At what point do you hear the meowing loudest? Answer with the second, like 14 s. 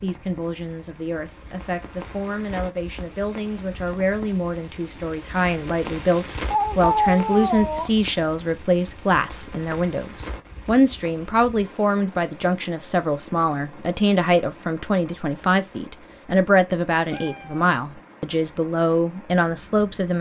7 s.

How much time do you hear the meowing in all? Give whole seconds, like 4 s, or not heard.
2 s.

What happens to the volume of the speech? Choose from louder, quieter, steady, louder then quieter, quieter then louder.
louder.